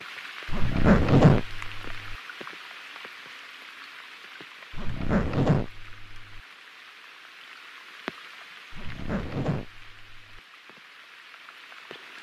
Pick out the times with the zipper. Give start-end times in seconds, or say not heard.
0.5-2.1, 4.7-6.4, 8.7-10.4.